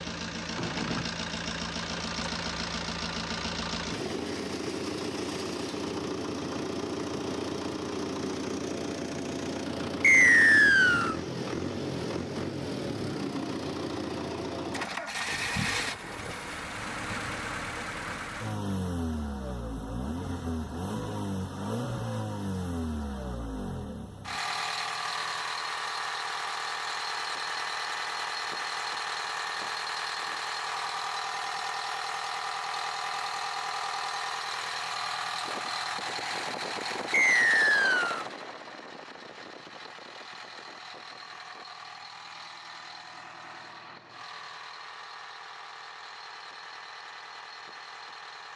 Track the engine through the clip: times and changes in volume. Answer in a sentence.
The engine can be heard from 0.0 to 48.5 s, getting quieter.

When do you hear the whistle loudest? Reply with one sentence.
The loudest moment of the whistle is at 10 seconds.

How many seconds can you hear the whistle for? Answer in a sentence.
You can hear the whistle for 2 seconds altogether.